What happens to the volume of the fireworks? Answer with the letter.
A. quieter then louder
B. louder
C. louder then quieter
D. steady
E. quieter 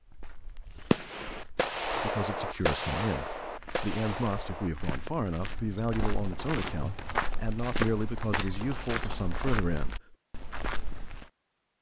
E.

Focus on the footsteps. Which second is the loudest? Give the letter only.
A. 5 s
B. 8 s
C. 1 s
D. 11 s
B.